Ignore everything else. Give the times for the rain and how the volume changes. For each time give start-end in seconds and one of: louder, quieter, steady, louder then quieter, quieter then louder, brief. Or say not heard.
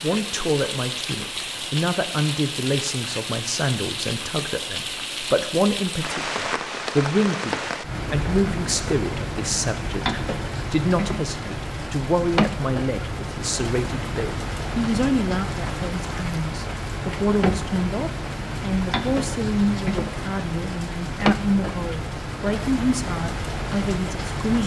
0.0-24.6 steady.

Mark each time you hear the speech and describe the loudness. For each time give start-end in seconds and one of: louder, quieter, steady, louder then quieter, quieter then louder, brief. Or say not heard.
0.0-24.6 steady.